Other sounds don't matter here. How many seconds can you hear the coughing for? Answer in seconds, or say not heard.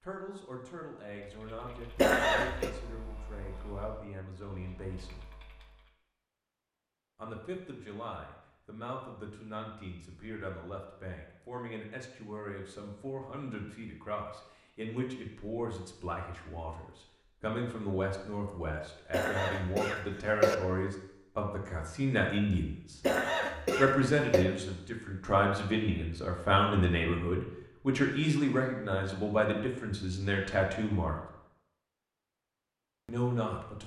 4 s.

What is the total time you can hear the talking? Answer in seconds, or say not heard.
29 s.